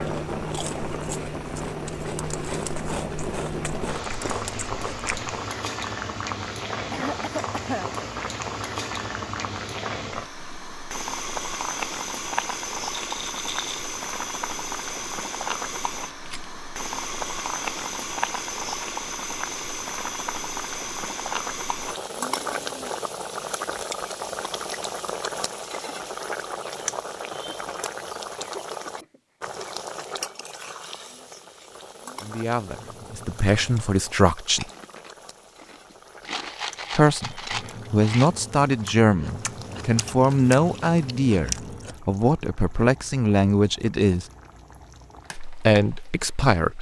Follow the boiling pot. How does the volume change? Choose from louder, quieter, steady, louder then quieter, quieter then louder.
quieter.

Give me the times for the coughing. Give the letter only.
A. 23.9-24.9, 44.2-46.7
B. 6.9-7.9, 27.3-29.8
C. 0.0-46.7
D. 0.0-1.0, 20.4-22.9
B.